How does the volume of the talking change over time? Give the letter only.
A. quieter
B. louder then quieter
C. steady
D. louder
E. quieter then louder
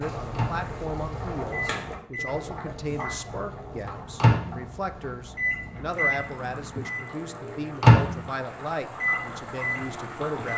C.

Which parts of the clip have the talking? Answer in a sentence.
The talking can be heard from 0.0 to 10.5 s.